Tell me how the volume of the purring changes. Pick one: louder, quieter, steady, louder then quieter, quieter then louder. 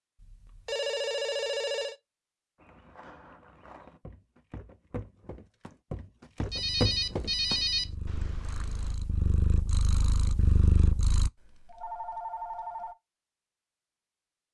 louder.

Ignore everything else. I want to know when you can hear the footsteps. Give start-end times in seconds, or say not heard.
2.5-8.9.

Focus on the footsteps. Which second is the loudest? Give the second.
7 s.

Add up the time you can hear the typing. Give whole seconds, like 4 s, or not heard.
not heard.